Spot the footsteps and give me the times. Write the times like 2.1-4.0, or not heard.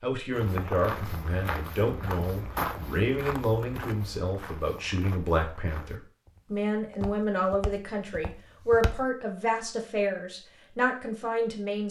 0.3-9.1.